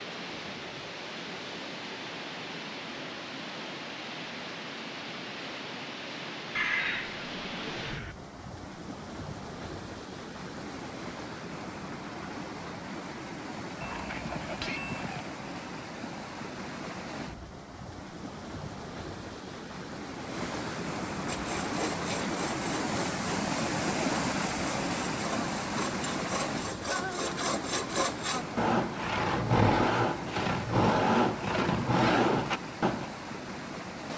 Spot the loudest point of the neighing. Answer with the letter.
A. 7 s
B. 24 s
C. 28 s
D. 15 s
A.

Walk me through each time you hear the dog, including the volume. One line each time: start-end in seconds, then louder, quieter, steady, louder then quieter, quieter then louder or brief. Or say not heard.
not heard.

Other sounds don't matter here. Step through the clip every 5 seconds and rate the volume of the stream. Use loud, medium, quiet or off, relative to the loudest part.
medium, medium, medium, medium, loud, loud, medium.